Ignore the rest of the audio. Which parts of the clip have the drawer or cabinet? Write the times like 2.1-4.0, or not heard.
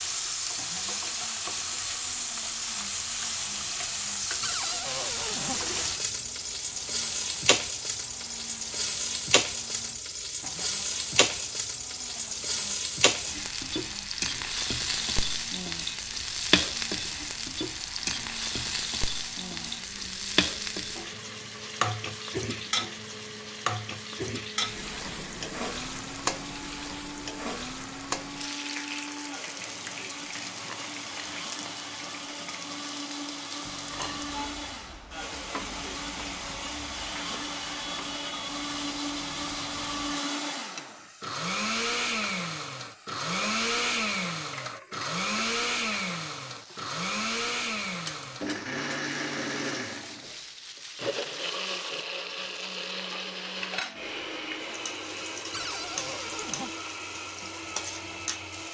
4.4-5.6, 55.5-56.7.